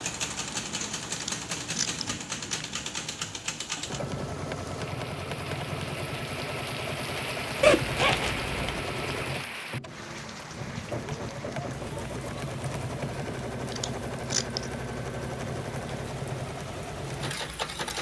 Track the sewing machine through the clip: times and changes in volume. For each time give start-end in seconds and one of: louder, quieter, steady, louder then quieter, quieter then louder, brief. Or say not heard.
0.0-17.9 steady.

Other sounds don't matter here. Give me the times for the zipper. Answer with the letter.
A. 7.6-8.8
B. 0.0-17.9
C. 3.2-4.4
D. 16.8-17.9
A.